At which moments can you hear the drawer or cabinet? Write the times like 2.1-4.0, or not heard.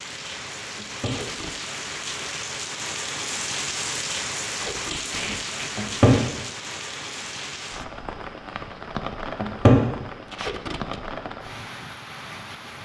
0.8-1.2, 5.8-6.2, 9.3-9.8.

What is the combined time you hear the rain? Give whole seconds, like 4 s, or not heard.
13 s.